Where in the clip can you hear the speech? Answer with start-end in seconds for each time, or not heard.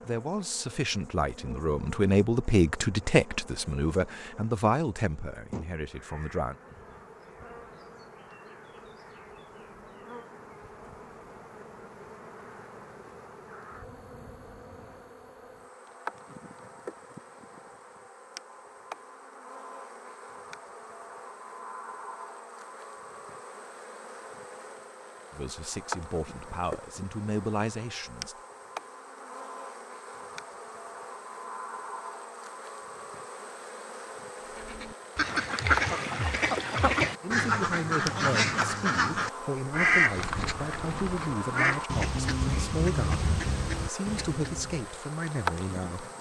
0.0-6.5, 25.3-28.4, 37.2-46.1.